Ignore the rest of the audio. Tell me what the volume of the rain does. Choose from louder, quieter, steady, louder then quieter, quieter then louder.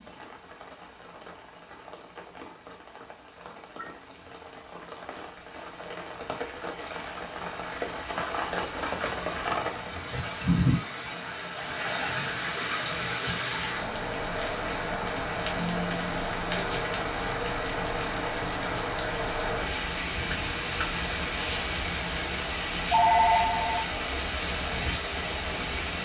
louder.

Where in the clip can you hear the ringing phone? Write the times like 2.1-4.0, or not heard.
3.8-4.3, 22.9-24.3.